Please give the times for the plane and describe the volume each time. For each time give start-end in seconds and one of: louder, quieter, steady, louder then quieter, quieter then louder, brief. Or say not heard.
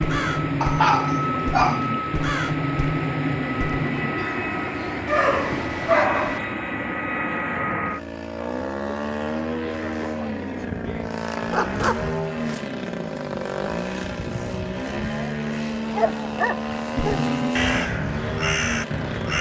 0.0-19.3 steady.